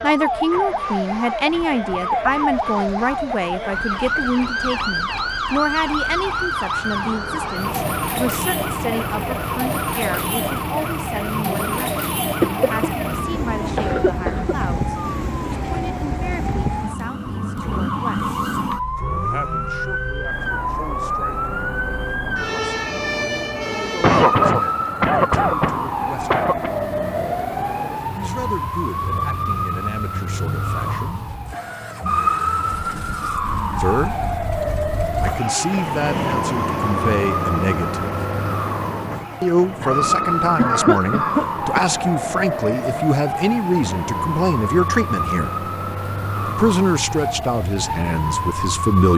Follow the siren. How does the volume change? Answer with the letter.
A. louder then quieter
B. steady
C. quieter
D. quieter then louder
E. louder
B.